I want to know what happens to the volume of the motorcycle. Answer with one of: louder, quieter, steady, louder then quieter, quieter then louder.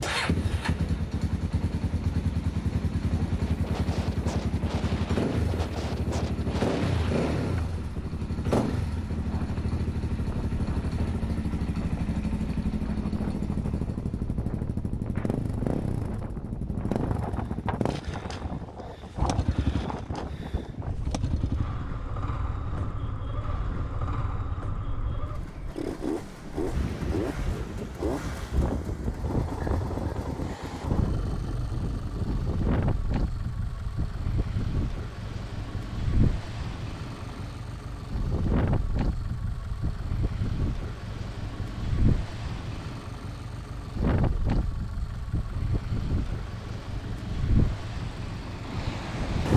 quieter.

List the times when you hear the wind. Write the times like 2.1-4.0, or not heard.
0.0-49.5.